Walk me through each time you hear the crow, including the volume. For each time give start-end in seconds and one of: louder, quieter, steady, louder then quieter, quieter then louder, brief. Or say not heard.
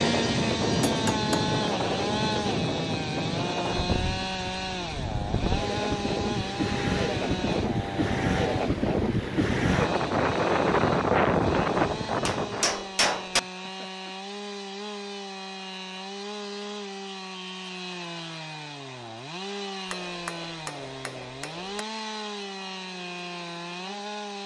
not heard.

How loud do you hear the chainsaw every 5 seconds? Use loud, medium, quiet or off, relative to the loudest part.
loud, loud, medium, medium, medium.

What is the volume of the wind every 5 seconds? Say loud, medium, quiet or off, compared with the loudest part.
medium, loud, loud, off, off.